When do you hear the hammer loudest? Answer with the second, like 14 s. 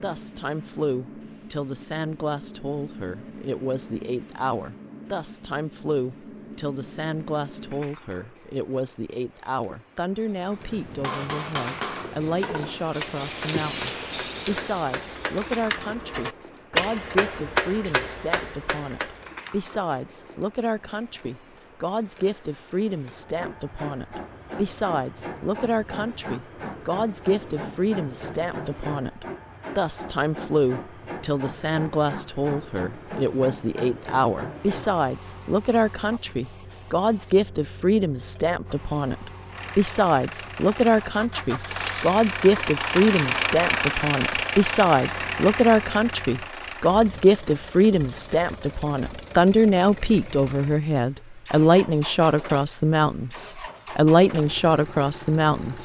17 s.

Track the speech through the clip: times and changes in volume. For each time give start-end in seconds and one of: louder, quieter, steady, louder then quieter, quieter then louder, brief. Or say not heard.
0.0-55.7 louder.